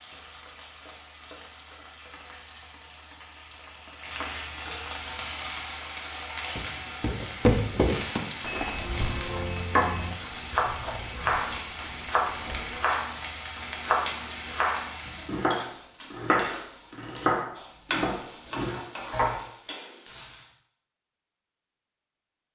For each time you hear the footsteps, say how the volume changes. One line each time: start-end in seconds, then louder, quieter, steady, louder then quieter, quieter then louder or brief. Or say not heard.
6.5-12.8 quieter.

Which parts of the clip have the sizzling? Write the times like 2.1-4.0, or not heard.
0.0-20.5.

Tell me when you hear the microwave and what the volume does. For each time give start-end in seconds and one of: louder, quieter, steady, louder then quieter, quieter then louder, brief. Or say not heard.
not heard.